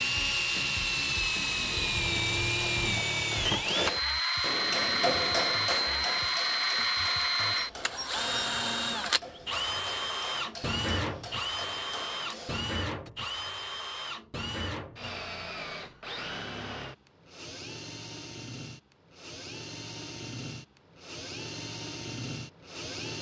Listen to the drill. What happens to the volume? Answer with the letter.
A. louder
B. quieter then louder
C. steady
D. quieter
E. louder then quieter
D.